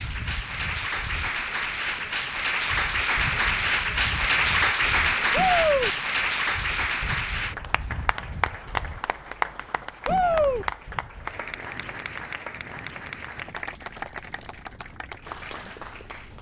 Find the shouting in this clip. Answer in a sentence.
The shouting can be heard from 5.3 to 5.9 s and from 10.1 to 10.7 s.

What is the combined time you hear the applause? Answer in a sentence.
You can hear the applause for 16 seconds altogether.